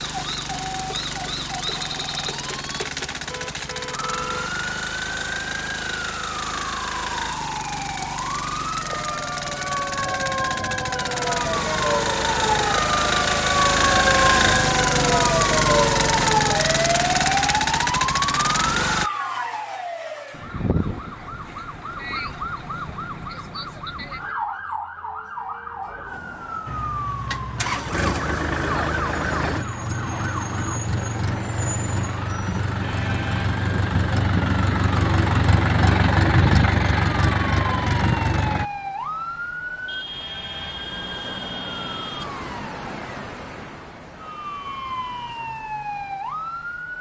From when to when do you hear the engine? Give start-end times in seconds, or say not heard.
0.0-19.1, 26.6-38.7.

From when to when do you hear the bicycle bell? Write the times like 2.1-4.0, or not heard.
not heard.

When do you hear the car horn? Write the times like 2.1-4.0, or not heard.
3.3-4.5, 39.9-42.2.